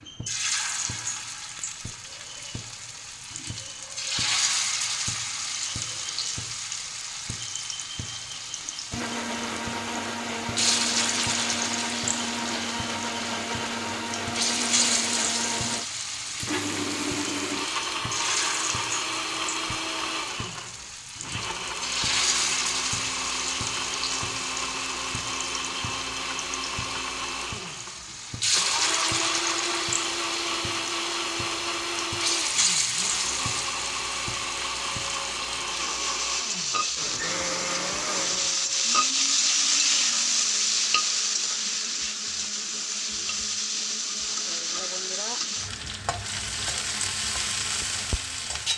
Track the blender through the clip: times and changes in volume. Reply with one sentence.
The blender can be heard from 8.9 to 48.6 s, getting quieter.